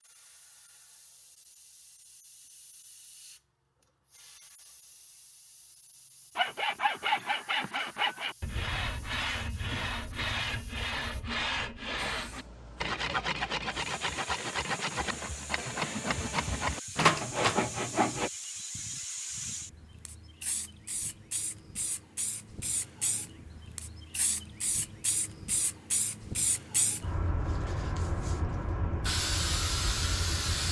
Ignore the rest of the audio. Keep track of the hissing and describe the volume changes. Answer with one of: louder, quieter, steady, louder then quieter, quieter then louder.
louder.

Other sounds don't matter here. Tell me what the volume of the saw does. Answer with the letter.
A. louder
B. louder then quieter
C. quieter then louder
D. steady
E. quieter
D.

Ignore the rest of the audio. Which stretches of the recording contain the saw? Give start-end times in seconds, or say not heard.
6.3-18.3.